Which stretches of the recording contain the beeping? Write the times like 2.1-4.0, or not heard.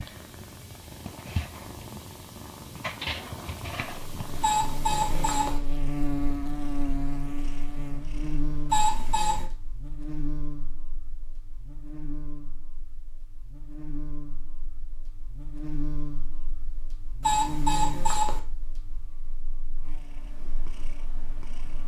4.4-5.6, 8.7-9.4, 17.2-18.4.